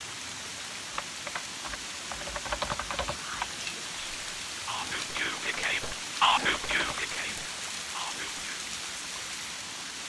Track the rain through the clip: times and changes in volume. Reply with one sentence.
You can hear the rain from 0.0 to 10.0 s, at a steady volume.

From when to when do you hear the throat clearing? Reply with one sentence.
You can't hear the throat clearing here.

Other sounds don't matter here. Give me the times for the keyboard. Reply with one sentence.
The keyboard can be heard from 0.9 to 3.5 s and from 5.1 to 7.0 s.